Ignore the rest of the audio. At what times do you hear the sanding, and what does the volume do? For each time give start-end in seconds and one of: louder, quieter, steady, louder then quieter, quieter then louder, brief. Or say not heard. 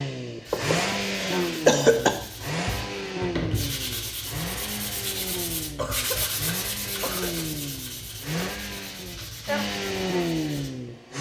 0.5-10.7 louder then quieter.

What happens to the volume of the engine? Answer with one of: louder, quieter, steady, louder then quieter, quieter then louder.
quieter then louder.